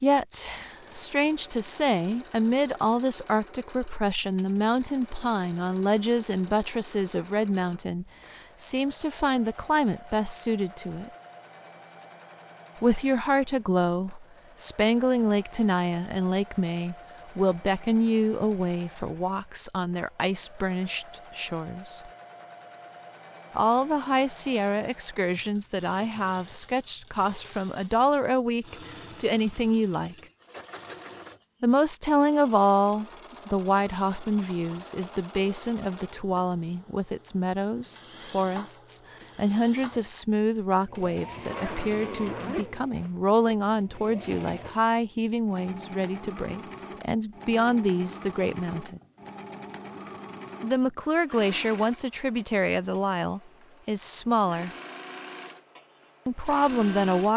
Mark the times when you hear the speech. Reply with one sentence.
The speech can be heard from 0.0 to 11.1 s, from 12.8 to 22.1 s, from 23.6 to 30.1 s, from 31.6 to 49.0 s, from 50.6 to 54.7 s and from 56.2 to 57.3 s.